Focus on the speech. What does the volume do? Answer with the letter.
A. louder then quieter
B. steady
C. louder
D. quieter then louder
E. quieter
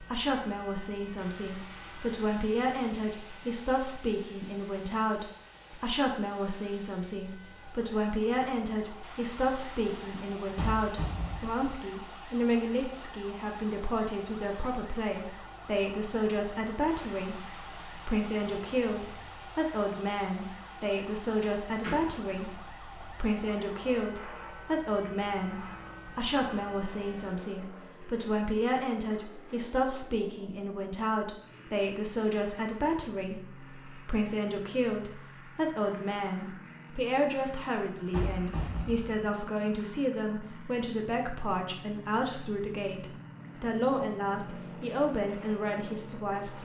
B.